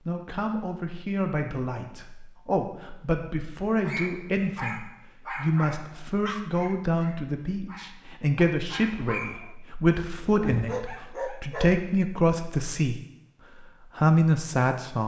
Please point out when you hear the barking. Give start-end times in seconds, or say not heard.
3.8-11.8.